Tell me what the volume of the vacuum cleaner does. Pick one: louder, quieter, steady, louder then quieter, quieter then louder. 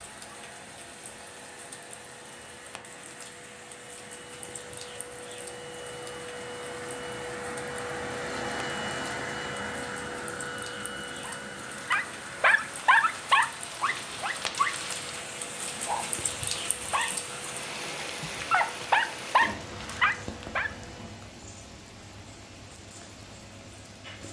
louder then quieter.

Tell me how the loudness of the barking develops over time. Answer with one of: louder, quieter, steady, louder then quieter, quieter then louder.
quieter then louder.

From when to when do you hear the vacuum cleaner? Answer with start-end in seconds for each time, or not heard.
0.0-21.2.